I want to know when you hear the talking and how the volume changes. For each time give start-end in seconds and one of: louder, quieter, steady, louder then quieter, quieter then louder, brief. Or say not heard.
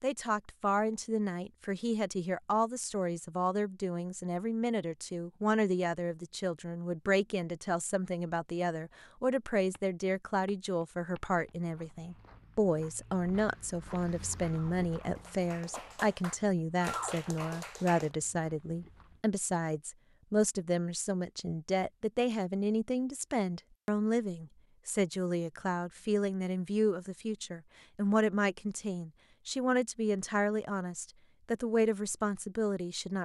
0.0-33.2 steady.